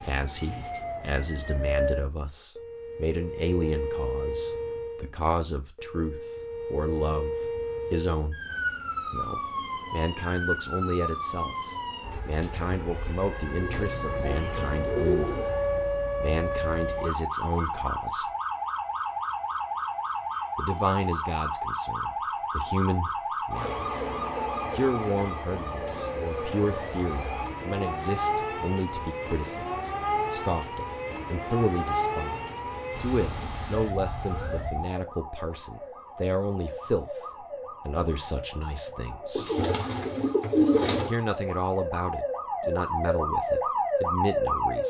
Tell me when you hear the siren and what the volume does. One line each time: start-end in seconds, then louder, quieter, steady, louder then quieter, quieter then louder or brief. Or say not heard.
0.0-44.8 steady.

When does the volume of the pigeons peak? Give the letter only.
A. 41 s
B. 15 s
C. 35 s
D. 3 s
A.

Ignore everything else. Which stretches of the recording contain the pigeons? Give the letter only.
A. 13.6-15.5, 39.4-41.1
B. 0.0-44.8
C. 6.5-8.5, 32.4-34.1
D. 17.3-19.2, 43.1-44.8
A.